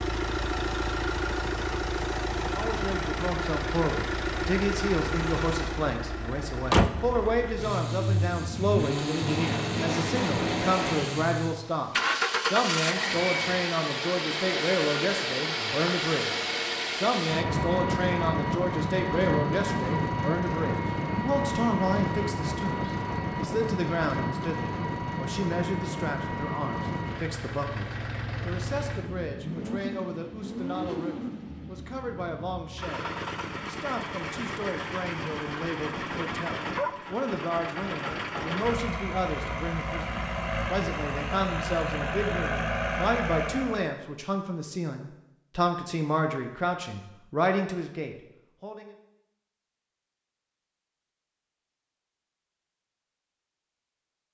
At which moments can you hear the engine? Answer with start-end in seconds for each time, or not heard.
0.0-44.0.